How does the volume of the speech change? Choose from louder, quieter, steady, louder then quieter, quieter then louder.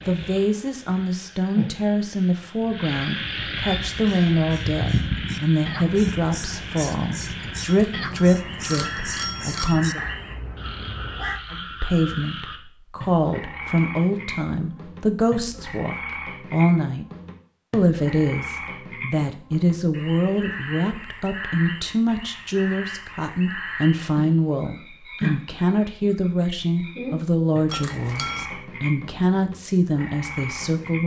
steady.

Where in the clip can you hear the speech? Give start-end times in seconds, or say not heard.
0.1-10.0, 11.5-17.1, 17.7-31.0.